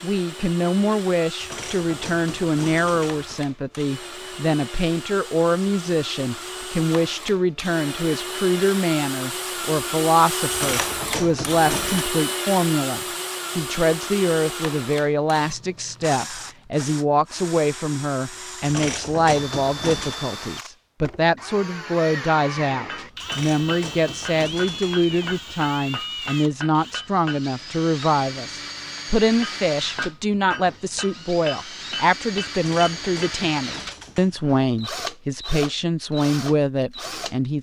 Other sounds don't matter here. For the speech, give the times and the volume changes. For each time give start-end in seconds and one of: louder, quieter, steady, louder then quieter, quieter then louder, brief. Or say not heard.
0.0-37.5 steady.